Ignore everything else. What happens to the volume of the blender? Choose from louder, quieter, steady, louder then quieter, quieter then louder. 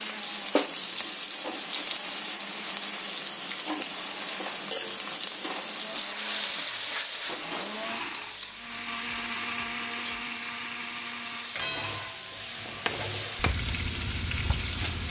louder then quieter.